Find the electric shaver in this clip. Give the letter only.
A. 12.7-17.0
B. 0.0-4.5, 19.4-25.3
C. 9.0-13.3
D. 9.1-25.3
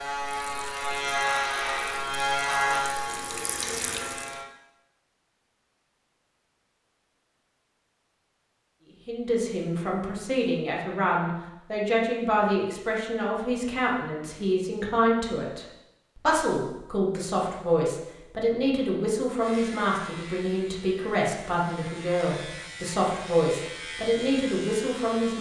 B.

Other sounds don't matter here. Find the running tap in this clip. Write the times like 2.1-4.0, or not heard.
0.1-4.4.